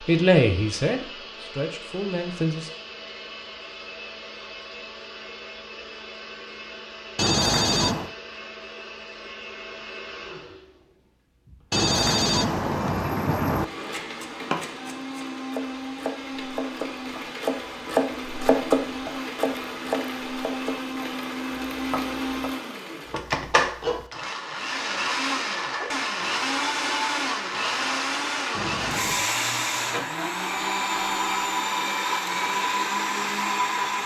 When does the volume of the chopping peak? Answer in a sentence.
The volume of the chopping peaks at 19 seconds.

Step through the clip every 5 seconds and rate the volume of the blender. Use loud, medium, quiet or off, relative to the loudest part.
quiet, quiet, quiet, medium, loud, loud, loud.